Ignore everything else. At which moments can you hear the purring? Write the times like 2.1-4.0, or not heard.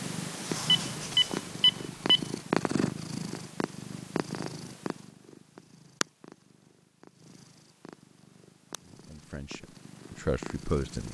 0.0-11.0.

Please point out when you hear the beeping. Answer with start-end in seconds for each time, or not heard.
0.7-2.2.